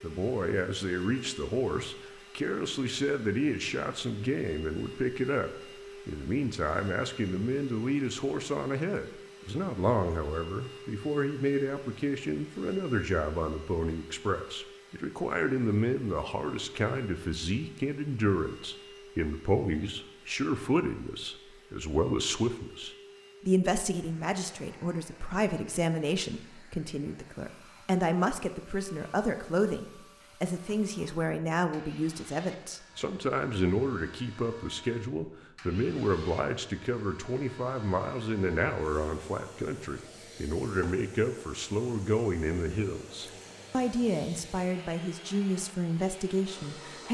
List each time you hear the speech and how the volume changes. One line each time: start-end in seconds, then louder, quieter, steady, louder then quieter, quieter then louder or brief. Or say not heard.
0.0-47.0 steady.